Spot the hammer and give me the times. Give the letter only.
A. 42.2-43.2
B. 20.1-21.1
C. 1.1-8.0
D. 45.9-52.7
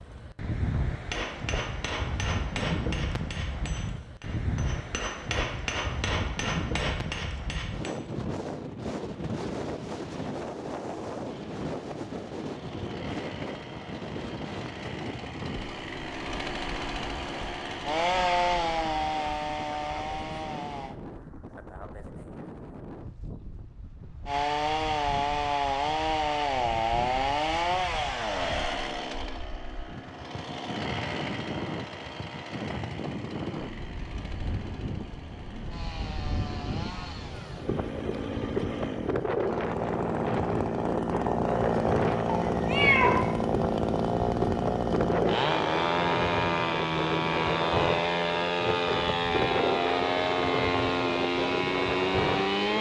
C.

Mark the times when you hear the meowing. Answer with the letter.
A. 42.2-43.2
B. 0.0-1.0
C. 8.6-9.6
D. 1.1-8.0
A.